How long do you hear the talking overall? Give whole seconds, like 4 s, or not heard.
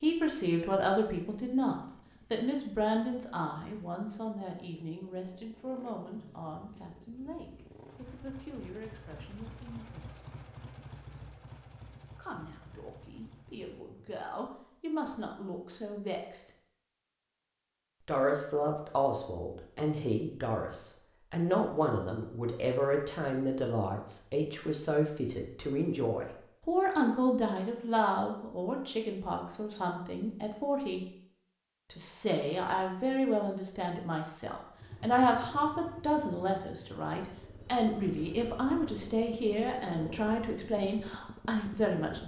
38 s.